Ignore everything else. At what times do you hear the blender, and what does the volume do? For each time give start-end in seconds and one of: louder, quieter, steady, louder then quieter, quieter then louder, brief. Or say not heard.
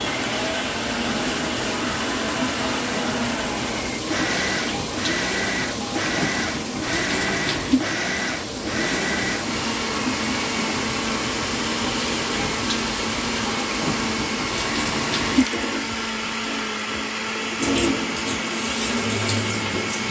0.0-20.0 steady.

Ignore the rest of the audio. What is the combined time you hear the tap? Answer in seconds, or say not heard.
20 s.